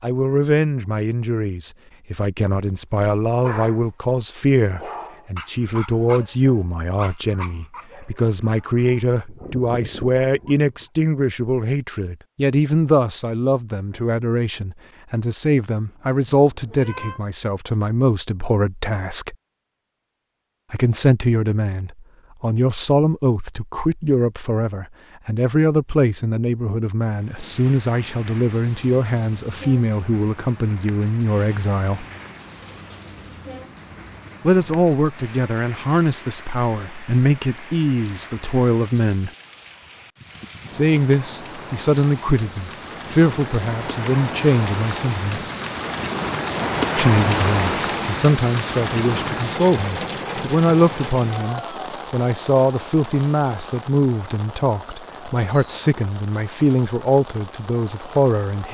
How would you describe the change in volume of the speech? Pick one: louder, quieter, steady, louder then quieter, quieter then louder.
steady.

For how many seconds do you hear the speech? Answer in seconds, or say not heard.
52 s.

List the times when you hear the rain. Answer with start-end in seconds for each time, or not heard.
27.1-58.6.